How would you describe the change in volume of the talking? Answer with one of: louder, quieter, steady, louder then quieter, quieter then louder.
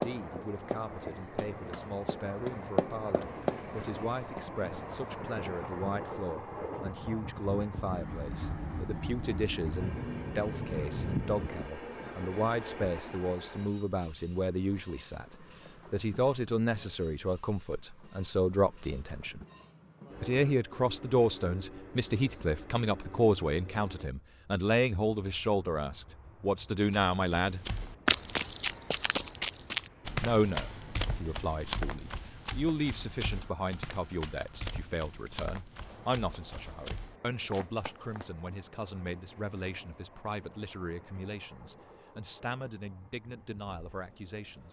louder then quieter.